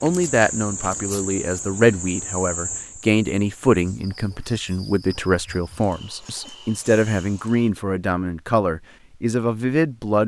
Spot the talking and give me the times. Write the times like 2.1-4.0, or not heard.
0.0-10.2.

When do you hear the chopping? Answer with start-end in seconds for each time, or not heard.
not heard.